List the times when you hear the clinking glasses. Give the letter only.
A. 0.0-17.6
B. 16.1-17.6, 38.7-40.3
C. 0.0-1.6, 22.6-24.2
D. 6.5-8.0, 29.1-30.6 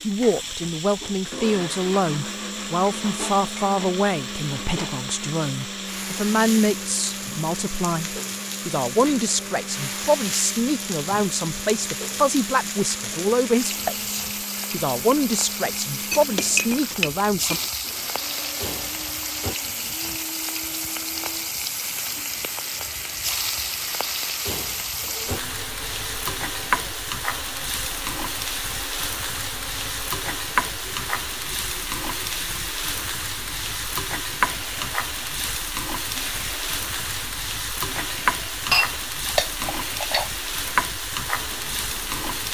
B.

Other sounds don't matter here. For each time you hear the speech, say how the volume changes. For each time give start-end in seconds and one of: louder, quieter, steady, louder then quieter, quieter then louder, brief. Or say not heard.
0.0-17.6 steady.